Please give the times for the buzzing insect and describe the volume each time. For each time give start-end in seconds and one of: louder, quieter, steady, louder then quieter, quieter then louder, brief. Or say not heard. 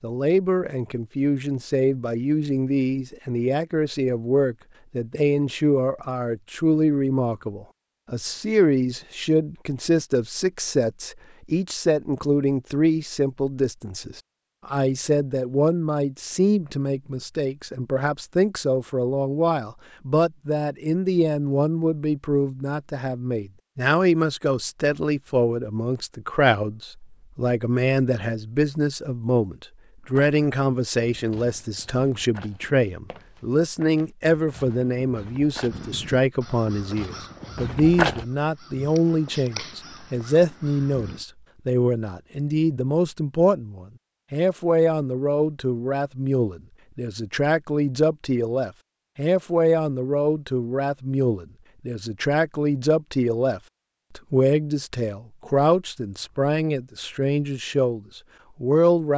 not heard.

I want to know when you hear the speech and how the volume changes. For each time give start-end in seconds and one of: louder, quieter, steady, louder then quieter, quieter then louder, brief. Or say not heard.
0.0-59.1 steady.